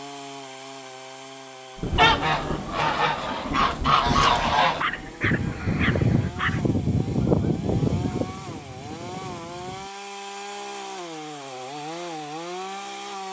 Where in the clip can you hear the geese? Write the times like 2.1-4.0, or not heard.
1.9-9.9.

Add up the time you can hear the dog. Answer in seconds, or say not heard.
2 s.